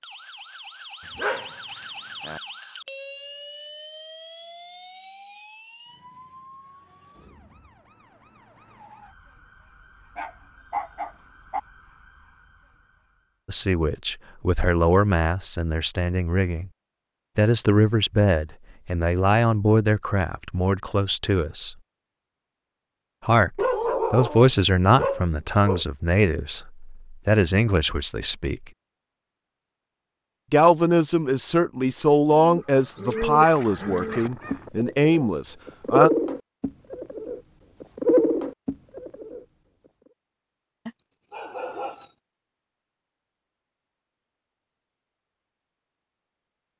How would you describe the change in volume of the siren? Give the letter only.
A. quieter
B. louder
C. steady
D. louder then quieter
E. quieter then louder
A.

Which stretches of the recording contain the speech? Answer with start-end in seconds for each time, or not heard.
13.4-16.7, 17.4-21.8, 23.2-28.6, 30.5-36.1.